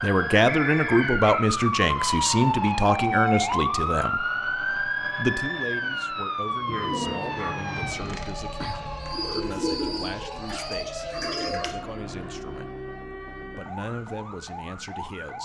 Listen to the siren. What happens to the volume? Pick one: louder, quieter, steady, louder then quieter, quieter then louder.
quieter.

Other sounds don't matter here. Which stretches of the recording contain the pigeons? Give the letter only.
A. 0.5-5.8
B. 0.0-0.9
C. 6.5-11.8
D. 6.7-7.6
C.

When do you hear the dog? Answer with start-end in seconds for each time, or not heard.
6.7-7.6.